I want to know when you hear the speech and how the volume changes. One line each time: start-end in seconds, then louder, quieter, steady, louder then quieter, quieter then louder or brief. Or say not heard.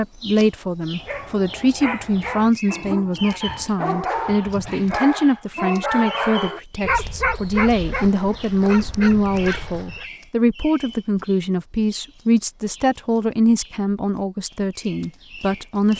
0.0-15.9 steady.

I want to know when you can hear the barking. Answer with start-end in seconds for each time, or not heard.
0.8-10.1.